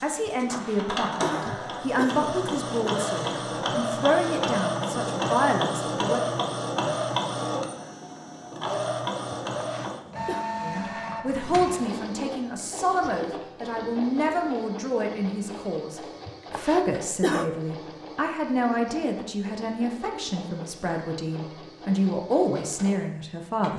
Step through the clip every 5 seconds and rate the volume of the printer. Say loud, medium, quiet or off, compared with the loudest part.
loud, loud, medium, quiet, quiet.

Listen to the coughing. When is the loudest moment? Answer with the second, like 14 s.
17 s.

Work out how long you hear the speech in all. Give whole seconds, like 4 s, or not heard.
19 s.